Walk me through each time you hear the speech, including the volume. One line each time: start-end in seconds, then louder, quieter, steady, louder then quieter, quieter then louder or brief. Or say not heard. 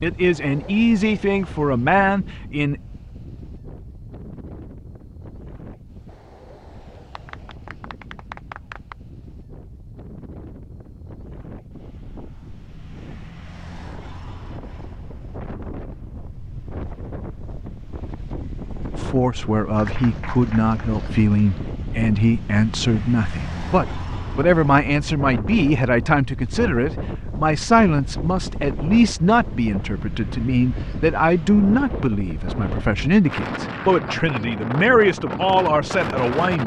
0.0-2.8 brief
18.9-36.6 steady.